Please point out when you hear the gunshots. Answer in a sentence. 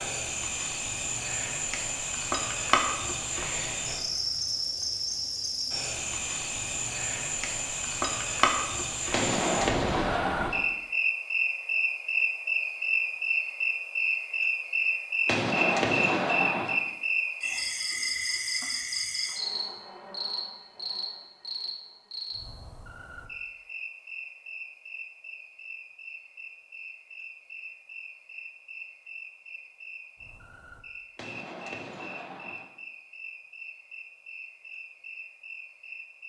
The gunshots can be heard from 9.1 to 10.6 s, from 15.2 to 16.8 s and from 31.1 to 32.6 s.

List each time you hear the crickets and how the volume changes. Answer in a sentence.
You can hear the crickets from 0.0 to 36.2 s, getting quieter.